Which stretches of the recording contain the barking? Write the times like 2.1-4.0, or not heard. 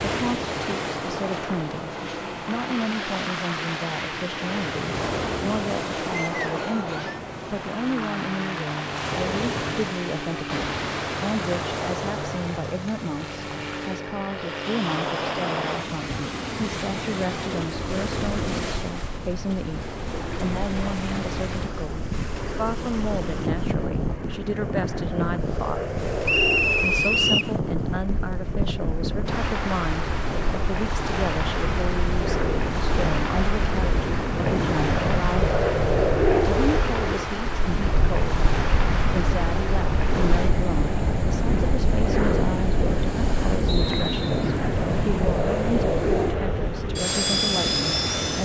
not heard.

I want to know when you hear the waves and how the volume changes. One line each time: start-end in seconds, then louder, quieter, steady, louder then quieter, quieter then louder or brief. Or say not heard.
0.0-48.4 steady.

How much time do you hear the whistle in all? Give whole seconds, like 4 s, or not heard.
3 s.